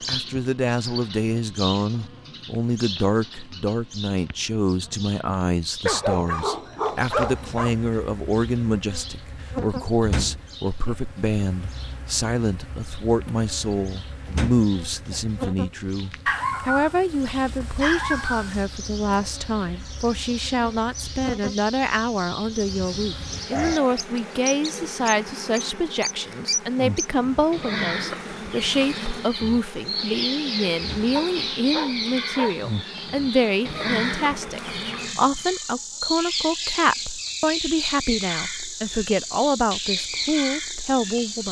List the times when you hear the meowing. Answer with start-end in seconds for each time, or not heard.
not heard.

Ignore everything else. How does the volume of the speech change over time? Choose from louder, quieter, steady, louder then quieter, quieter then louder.
steady.